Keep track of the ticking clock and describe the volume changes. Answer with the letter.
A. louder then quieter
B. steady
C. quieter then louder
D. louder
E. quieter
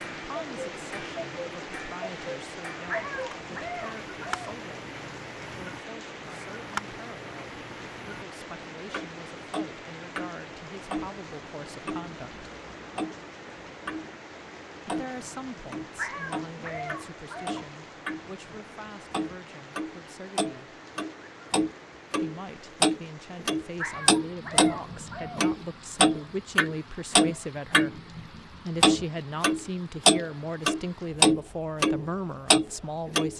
D.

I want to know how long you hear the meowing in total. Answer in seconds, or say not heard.
5 s.